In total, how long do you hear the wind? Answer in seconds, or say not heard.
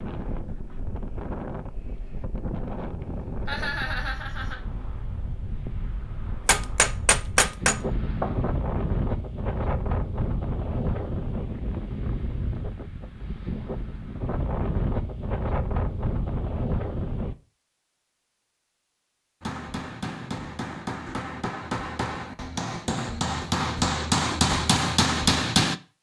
17 s.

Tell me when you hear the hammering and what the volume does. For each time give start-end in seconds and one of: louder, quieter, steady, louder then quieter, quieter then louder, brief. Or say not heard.
6.5-8.4 brief
19.4-25.8 louder.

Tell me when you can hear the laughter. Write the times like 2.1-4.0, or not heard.
3.5-4.5.